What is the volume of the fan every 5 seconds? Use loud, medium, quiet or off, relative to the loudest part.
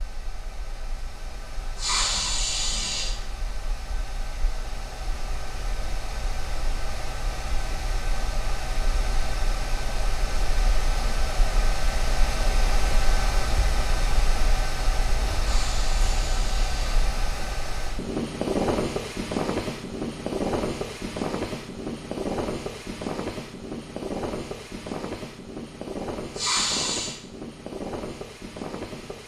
quiet, medium, loud, loud, loud, medium.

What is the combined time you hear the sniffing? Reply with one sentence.
The sniffing can be heard for 4 seconds in total.